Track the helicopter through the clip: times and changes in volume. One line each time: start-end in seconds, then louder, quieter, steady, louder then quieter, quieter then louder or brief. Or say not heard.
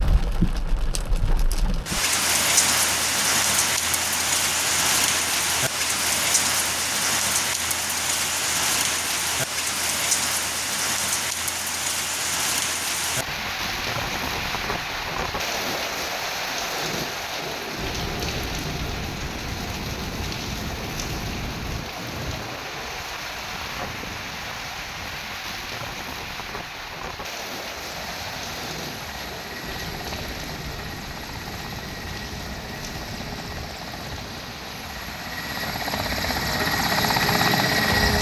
27.5-38.1 louder.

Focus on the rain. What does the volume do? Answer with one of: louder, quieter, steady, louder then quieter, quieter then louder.
quieter.